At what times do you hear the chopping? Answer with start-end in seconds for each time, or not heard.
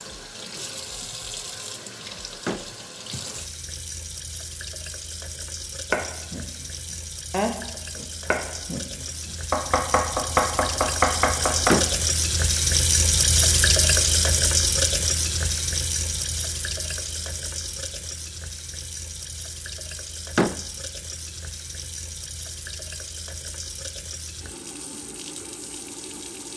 5.9-11.8.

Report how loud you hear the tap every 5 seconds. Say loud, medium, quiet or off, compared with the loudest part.
quiet, quiet, loud, medium, quiet, quiet.